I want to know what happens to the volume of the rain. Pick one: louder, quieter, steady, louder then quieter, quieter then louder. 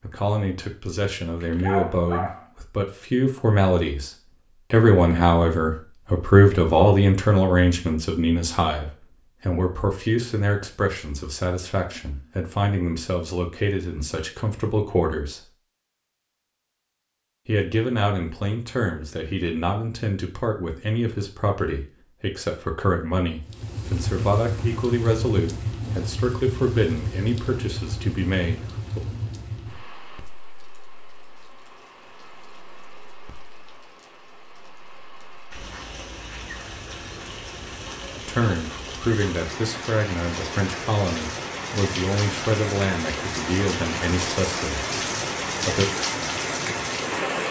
quieter then louder.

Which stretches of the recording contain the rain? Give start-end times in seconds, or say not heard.
23.4-47.4.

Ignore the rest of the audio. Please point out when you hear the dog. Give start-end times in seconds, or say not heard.
1.4-2.5.